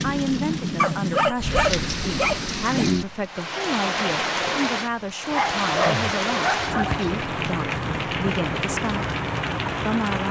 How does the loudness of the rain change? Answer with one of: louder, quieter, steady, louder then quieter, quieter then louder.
steady.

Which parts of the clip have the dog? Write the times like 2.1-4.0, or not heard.
0.8-2.9, 5.3-7.2.